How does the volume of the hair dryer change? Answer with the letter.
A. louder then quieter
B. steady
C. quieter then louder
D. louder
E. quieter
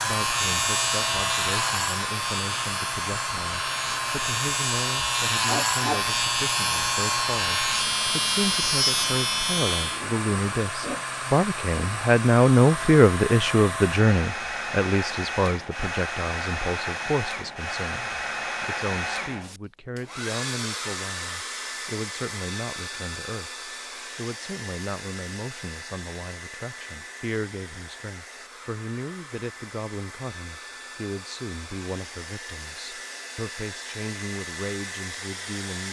E.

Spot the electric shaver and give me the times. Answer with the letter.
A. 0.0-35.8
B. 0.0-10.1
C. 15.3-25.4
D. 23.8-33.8
B.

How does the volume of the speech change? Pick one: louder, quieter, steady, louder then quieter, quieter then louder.
louder then quieter.